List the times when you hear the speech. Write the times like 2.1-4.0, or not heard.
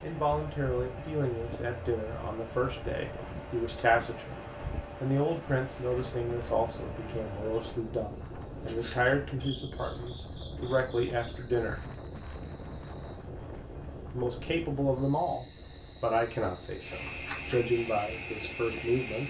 0.0-11.8, 14.1-19.2.